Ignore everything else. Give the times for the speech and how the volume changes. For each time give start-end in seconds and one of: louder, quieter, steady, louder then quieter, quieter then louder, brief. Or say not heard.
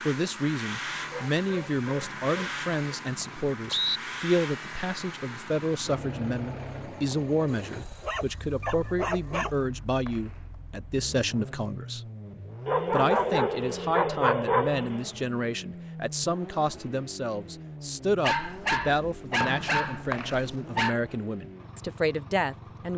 0.1-12.0 steady
12.9-22.9 steady.